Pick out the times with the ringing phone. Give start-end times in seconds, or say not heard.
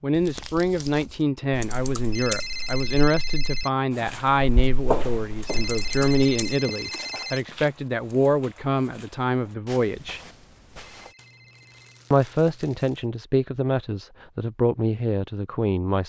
2.1-3.7, 5.5-7.4, 10.9-12.0.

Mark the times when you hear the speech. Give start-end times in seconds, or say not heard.
0.0-10.2, 12.1-16.0.